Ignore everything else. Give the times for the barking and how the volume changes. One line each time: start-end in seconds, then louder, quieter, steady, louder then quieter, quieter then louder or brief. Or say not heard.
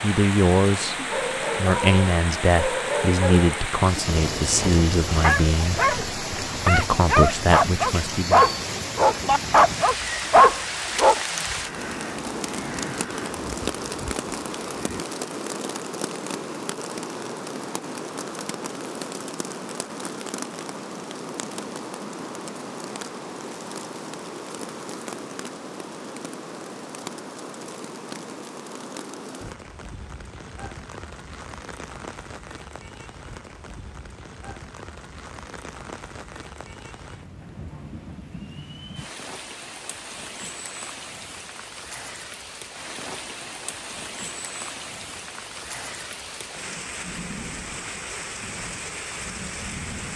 0.9-11.2 louder.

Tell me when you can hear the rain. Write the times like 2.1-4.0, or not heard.
0.0-50.1.